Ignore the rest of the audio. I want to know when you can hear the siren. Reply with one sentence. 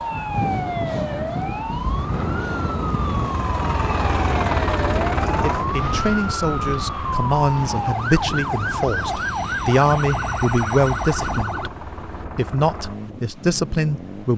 The siren can be heard from 0.0 to 11.7 s.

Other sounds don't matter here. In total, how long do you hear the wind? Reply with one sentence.
The wind can be heard for 14 seconds in total.